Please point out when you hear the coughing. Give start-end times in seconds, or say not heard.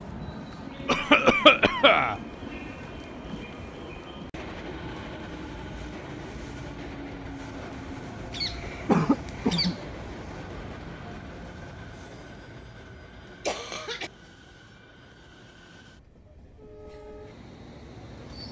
0.8-2.1, 8.3-9.8, 13.4-14.1.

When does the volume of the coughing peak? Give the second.
1 s.